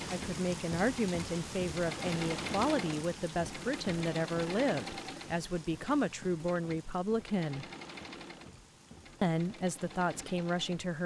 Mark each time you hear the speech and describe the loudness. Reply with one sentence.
You can hear the speech from 0.1 to 7.7 s, at a steady volume; and briefly from 9.2 to 11.0 s.